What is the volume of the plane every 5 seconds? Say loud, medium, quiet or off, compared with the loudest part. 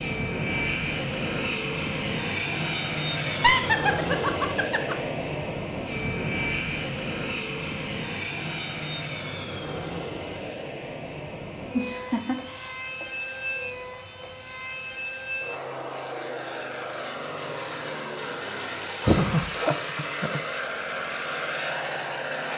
loud, loud, medium, medium, loud.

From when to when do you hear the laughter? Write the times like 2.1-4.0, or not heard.
3.2-5.0, 11.7-13.1, 19.0-20.4.